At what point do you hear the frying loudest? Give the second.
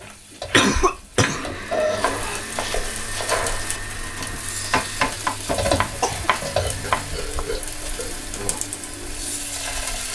6 s.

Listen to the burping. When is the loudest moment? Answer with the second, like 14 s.
2 s.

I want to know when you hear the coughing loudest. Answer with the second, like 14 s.
1 s.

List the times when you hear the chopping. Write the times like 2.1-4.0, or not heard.
0.0-7.4.